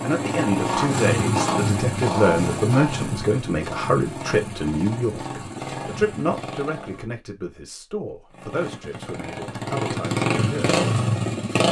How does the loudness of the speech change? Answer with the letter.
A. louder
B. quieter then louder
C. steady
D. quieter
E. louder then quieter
D.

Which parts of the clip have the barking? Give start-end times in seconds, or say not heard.
not heard.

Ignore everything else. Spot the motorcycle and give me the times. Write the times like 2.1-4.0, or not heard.
0.0-7.0, 8.3-11.6.